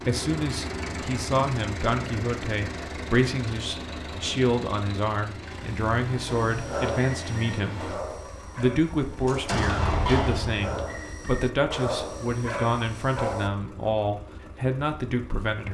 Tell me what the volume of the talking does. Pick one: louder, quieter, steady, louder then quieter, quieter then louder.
steady.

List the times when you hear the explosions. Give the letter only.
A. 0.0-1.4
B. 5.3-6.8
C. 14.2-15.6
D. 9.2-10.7
D.